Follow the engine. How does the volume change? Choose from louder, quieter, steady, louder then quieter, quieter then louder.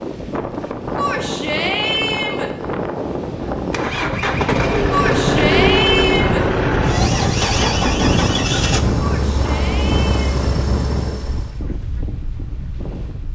quieter.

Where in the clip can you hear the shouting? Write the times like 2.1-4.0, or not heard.
0.9-2.5, 4.9-6.5, 8.9-10.4.